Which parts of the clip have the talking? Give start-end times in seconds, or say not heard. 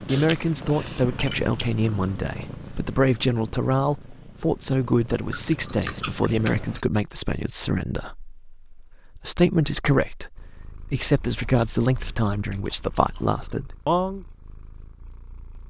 0.0-14.2.